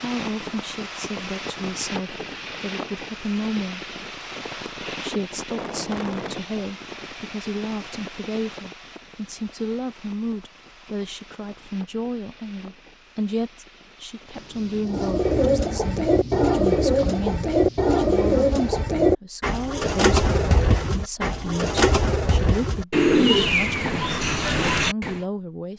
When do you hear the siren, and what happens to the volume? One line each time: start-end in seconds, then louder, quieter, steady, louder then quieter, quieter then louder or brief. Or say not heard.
not heard.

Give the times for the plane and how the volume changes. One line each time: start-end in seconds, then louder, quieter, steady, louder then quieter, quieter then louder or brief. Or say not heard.
0.0-14.9 quieter.